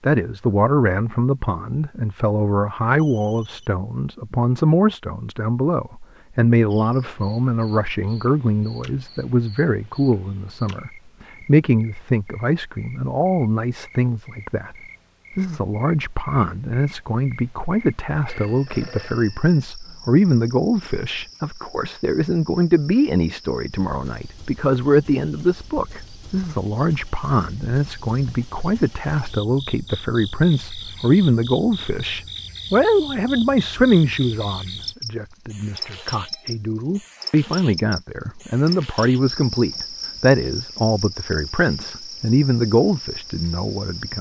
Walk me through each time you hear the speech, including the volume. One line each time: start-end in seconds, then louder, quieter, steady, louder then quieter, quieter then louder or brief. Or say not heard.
0.0-14.8 steady
15.3-44.1 steady.